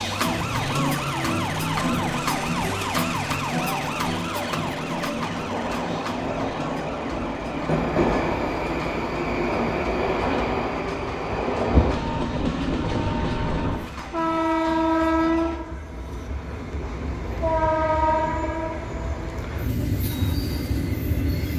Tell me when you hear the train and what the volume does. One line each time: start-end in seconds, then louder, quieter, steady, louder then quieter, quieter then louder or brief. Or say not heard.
0.0-21.5 louder.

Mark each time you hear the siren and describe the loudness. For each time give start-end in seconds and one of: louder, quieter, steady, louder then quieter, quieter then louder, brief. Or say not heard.
0.0-15.7 quieter.